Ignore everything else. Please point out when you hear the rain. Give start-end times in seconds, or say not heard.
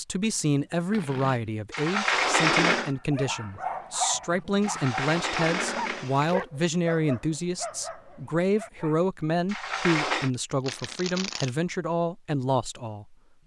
not heard.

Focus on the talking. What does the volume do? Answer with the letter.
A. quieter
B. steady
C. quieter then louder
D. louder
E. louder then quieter
B.